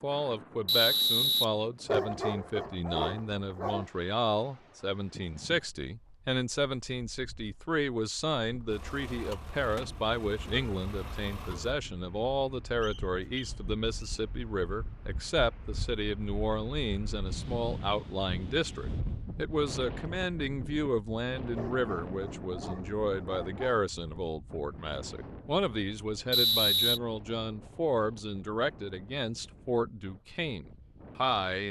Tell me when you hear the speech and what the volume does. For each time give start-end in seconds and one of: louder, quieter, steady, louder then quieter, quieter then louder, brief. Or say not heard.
0.0-31.6 steady.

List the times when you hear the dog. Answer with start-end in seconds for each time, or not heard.
1.9-3.9, 21.6-23.9.